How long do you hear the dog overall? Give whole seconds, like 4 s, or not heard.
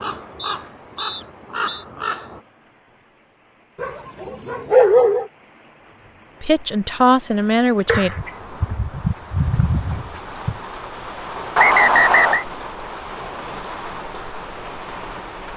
4 s.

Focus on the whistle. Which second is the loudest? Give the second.
12 s.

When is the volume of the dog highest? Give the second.
5 s.